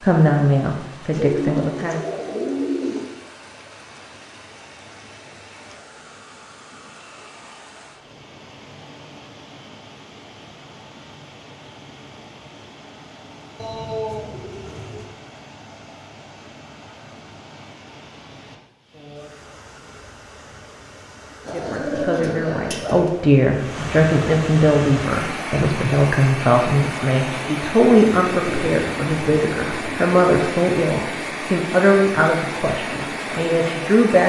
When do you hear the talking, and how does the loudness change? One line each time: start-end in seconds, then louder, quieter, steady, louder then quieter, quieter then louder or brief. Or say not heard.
0.0-2.0 brief
21.5-34.2 steady.